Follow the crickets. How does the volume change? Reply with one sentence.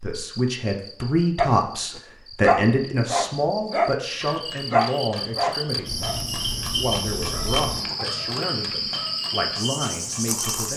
The loudness of the crickets goes up.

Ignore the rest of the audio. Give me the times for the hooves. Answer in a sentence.
You can hear the hooves from 4.2 to 10.7 s.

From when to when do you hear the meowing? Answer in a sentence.
You can't hear the meowing here.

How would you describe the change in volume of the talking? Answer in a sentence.
The volume of the talking goes down.